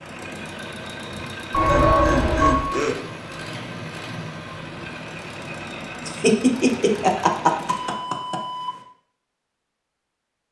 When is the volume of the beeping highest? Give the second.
2 s.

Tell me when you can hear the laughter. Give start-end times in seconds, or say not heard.
1.1-3.0, 6.0-8.3.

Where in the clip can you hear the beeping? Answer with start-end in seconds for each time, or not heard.
1.5-2.6, 7.5-8.8.